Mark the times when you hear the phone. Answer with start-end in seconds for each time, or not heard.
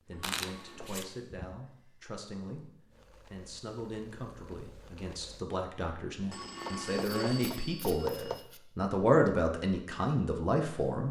0.1-1.1, 6.3-8.5.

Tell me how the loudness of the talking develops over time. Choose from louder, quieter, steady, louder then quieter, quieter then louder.
louder.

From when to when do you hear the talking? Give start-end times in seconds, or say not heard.
0.1-11.0.